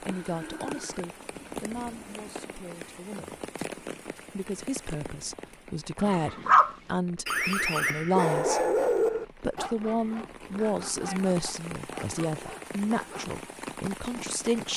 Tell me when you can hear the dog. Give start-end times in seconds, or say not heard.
6.0-13.4.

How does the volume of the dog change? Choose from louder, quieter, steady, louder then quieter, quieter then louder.
quieter.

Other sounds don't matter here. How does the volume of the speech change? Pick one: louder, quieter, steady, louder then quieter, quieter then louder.
louder.